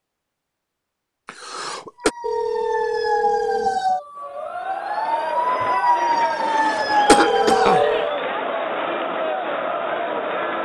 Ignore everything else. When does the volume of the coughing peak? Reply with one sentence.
The loudest moment of the coughing is at 7 seconds.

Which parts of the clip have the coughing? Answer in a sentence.
The coughing can be heard from 1.2 to 2.1 s and from 6.5 to 7.8 s.